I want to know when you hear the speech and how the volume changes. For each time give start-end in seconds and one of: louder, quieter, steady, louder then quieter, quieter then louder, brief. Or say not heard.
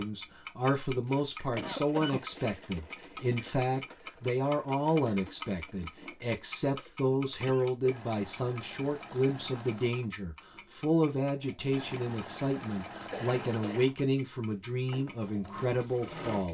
0.0-16.4 steady.